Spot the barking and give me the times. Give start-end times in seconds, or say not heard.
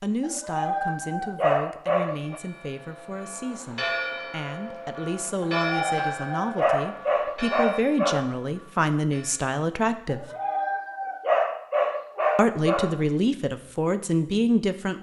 0.2-2.4, 5.5-8.3, 10.1-13.0.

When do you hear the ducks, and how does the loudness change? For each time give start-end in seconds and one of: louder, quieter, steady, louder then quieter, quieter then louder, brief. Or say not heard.
not heard.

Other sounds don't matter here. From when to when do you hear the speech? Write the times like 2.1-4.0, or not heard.
0.0-10.2, 12.3-14.9.